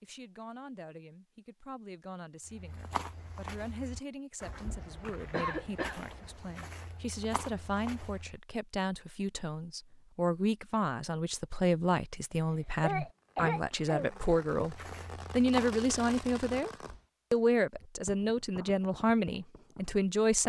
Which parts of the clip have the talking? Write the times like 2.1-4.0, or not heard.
0.0-16.7, 17.3-20.4.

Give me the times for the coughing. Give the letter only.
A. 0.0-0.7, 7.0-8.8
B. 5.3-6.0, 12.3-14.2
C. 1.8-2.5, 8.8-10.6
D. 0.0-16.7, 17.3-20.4
B.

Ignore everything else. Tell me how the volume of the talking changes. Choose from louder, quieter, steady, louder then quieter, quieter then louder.
louder.